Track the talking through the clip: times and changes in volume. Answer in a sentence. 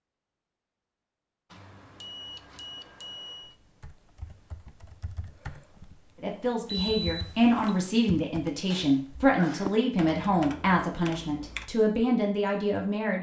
You can hear the talking from 6.2 to 13.1 s, at a steady volume.